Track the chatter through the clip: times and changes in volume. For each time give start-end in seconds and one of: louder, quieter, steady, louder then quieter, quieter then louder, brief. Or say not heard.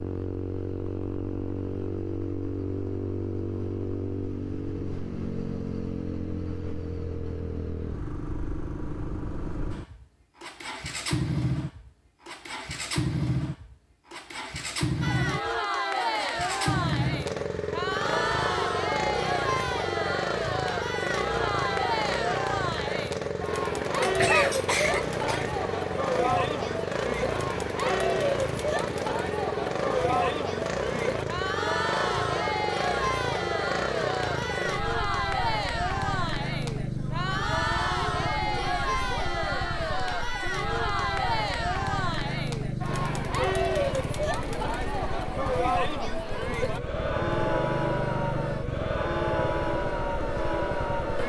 15.0-51.2 steady.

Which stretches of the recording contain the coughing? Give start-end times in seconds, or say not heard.
24.0-25.5.